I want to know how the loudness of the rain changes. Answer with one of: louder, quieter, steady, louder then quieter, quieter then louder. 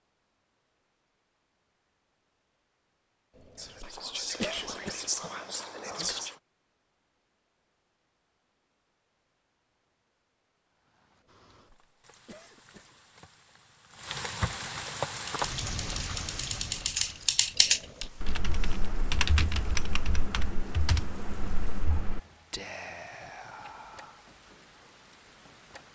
louder then quieter.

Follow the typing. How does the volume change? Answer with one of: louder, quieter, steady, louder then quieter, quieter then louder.
louder then quieter.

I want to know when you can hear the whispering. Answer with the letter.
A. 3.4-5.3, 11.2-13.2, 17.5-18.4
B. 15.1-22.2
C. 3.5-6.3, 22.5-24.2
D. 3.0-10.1
C.